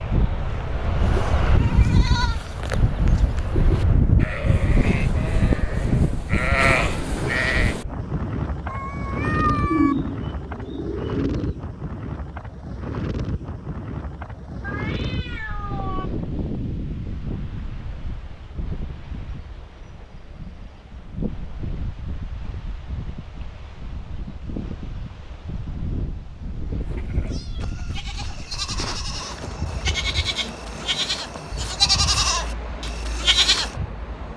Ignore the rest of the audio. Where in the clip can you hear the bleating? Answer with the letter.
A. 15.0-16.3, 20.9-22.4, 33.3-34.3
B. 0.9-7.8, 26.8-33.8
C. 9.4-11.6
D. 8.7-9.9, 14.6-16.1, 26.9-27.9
B.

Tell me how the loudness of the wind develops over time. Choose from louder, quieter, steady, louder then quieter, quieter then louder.
quieter.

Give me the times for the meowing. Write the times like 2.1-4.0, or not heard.
8.7-9.9, 14.6-16.1, 26.9-27.9.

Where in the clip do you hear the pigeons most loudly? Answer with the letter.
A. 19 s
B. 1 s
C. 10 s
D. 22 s
C.